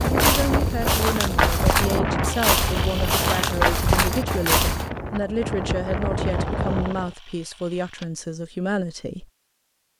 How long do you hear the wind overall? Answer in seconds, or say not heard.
7 s.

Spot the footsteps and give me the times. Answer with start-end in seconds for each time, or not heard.
0.0-4.9.